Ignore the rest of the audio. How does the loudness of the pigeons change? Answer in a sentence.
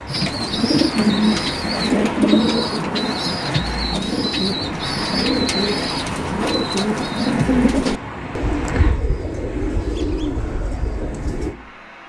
The volume of the pigeons goes down.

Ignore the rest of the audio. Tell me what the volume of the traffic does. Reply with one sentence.
The volume of the traffic goes down.